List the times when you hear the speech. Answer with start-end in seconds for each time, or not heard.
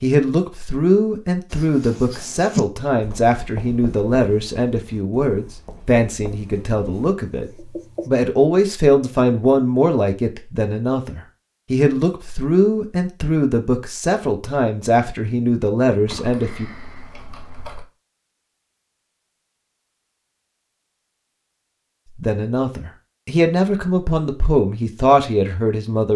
0.0-16.7, 22.1-26.1.